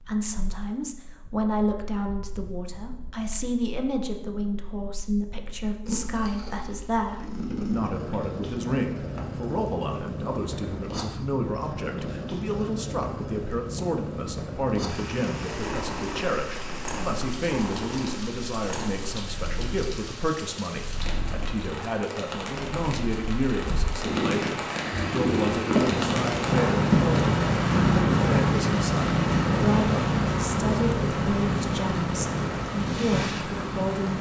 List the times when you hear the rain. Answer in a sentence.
The rain can be heard from 14.8 to 34.1 s.